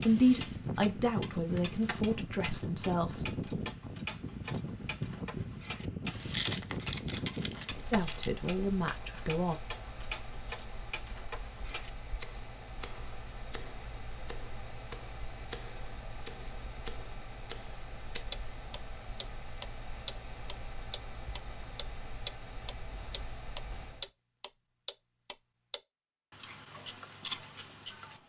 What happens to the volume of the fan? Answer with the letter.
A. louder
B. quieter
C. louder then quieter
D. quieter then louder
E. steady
B.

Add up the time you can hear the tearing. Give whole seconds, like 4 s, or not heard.
2 s.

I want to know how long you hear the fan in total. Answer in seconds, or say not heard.
24 s.